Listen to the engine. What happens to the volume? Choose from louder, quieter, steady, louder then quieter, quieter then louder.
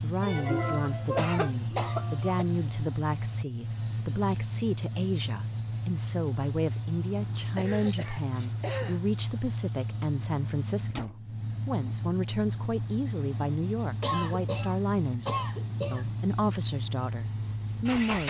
steady.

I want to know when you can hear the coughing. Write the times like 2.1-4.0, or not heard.
0.2-2.5, 7.5-9.0, 14.0-16.1.